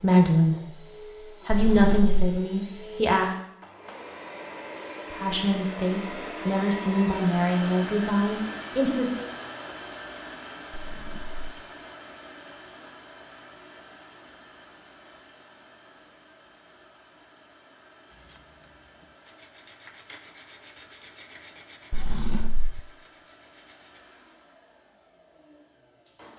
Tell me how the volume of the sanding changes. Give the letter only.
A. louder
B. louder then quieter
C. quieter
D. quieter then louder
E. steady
B.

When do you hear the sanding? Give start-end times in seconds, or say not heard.
18.1-24.1.